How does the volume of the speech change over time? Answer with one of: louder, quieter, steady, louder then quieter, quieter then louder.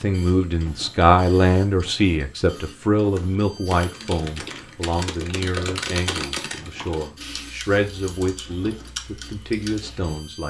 quieter.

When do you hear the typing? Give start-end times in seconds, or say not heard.
3.1-10.2.